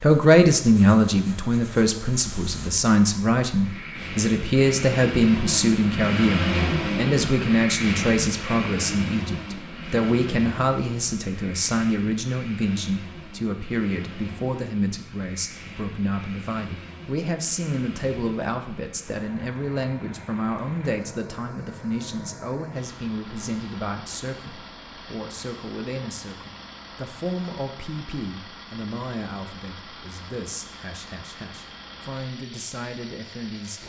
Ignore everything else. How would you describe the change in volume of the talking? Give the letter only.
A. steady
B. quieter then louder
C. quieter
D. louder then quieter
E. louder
C.